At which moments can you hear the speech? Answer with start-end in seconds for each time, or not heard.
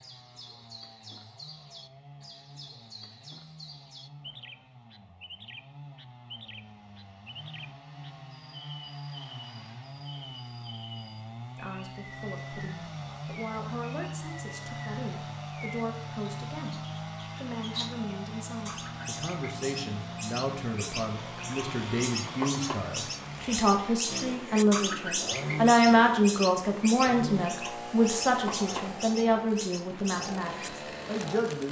11.6-31.6.